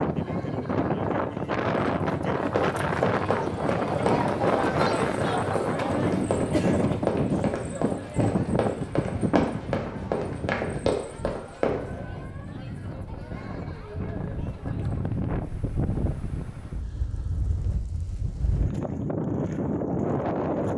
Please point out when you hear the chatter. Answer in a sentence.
The chatter can be heard from 0.0 to 15.2 s.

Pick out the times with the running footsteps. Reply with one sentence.
The running footsteps can be heard from 2.5 to 11.8 s.